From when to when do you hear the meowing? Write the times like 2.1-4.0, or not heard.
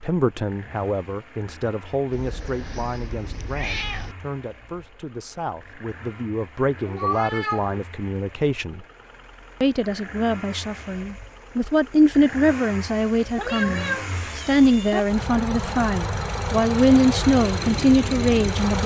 2.1-4.2, 6.8-7.8, 13.3-15.0.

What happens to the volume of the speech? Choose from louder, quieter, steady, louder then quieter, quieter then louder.
louder.